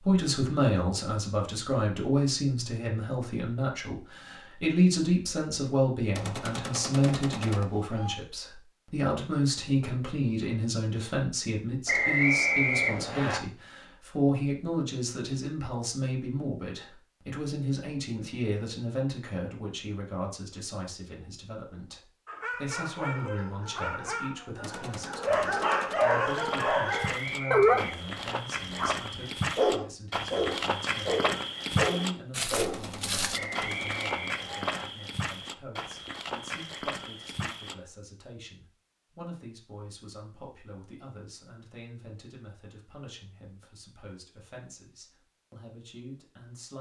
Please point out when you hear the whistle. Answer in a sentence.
The whistle can be heard from 11.8 to 13.4 s, from 27.0 to 28.2 s and from 33.3 to 34.9 s.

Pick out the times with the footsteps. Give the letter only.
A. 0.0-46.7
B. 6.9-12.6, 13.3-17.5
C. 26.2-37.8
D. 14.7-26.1
C.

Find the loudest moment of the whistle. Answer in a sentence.
The loudest moment of the whistle is at 12 seconds.